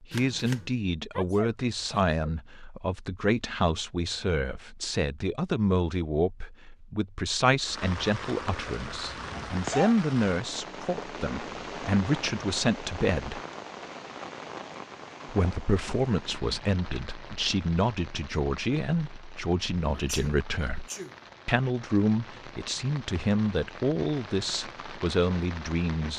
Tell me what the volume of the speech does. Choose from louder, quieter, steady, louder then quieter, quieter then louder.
steady.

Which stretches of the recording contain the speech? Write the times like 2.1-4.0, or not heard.
0.0-13.4, 15.2-20.9, 21.4-26.1.